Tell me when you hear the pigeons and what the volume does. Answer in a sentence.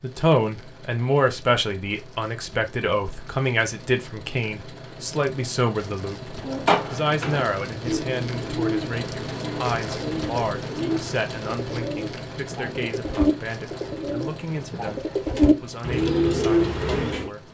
The pigeons can be heard from 6.4 to 17.3 s, getting louder.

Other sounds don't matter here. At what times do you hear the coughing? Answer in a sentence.
You can't hear the coughing here.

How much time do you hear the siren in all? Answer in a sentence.
You can't hear the siren here.